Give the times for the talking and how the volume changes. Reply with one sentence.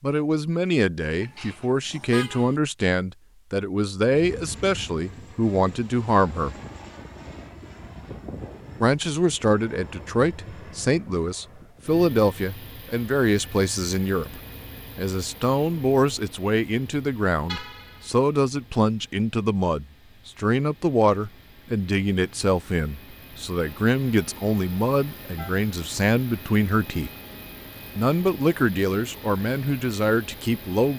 You can hear the talking from 0.0 to 6.5 s, at a steady volume; from 8.8 to 27.1 s, at a steady volume; and briefly from 27.9 to 30.9 s.